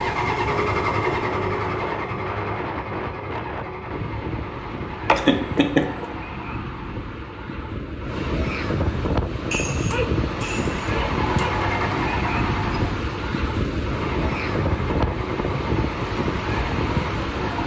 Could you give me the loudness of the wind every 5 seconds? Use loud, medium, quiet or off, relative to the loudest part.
medium, loud, loud, loud.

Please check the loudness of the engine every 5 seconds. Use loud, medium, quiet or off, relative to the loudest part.
loud, medium, loud, medium.